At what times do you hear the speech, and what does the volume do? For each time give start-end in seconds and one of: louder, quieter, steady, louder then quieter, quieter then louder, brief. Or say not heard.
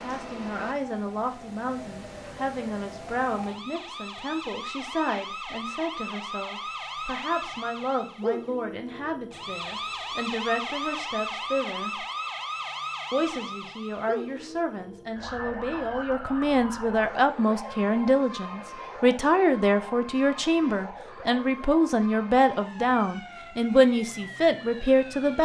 0.0-12.1 steady
13.1-25.3 louder.